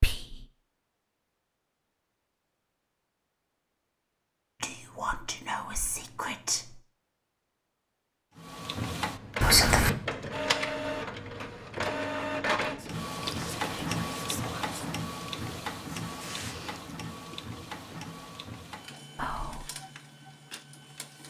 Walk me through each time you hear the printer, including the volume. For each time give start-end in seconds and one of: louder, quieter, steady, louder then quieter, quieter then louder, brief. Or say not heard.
8.3-21.2 quieter.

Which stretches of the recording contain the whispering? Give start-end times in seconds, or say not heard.
0.0-0.5, 4.6-6.8, 9.4-9.9, 12.8-15.0, 19.1-19.6.